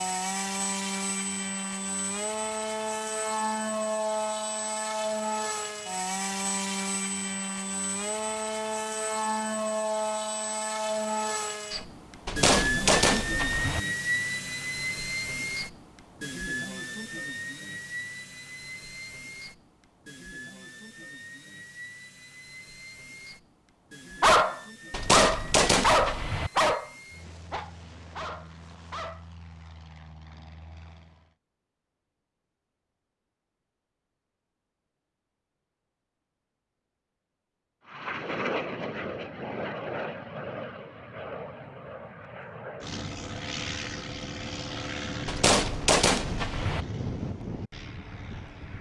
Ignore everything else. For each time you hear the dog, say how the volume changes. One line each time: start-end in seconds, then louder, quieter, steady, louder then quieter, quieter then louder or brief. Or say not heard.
24.2-29.2 quieter.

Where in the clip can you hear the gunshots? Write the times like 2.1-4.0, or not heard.
12.2-13.8, 24.9-26.5, 45.2-46.9.